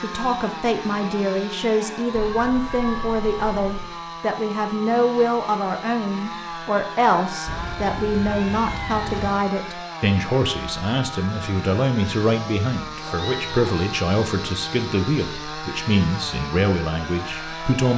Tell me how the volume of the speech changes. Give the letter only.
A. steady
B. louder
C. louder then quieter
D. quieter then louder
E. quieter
A.